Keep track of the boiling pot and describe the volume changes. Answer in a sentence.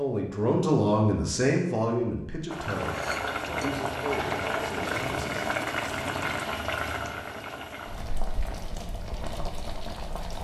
The loudness of the boiling pot goes down.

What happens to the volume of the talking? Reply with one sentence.
The volume of the talking goes down.